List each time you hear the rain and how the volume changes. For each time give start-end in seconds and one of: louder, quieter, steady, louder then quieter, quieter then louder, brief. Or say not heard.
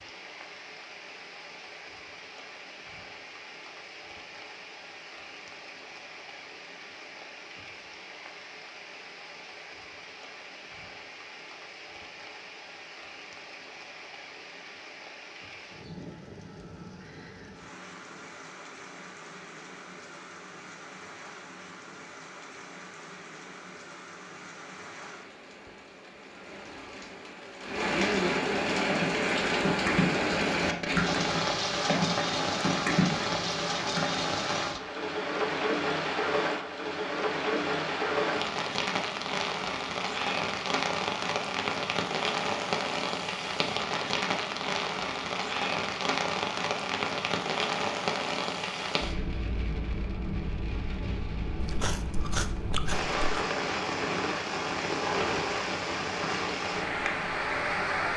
0.0-58.1 louder.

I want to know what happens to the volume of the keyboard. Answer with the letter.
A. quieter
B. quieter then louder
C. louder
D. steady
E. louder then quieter
D.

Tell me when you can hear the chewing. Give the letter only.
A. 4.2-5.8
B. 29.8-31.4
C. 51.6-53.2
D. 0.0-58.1
C.